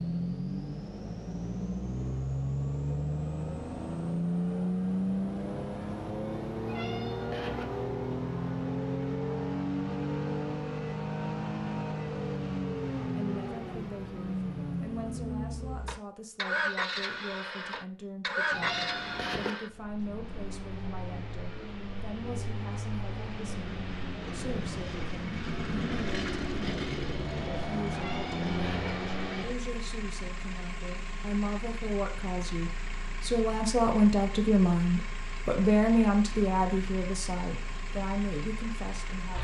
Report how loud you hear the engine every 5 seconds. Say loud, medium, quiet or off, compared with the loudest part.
loud, loud, loud, loud, medium, loud, medium, medium.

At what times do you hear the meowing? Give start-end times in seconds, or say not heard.
6.6-7.7, 18.5-19.6, 27.9-28.9.